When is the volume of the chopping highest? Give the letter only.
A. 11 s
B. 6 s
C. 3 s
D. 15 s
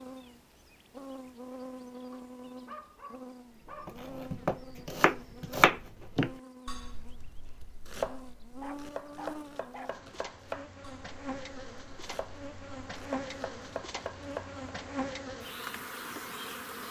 B.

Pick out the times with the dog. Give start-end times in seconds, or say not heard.
2.1-4.0, 8.6-10.0.